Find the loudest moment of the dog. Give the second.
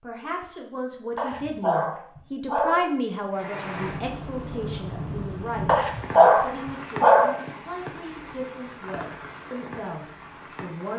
6 s.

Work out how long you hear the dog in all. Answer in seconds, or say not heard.
3 s.